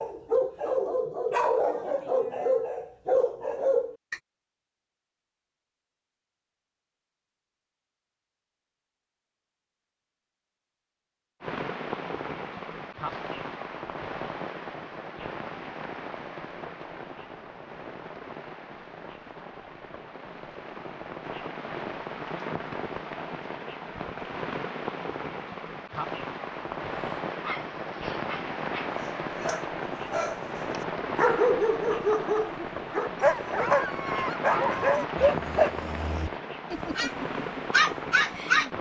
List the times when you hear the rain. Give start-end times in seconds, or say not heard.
11.4-38.7.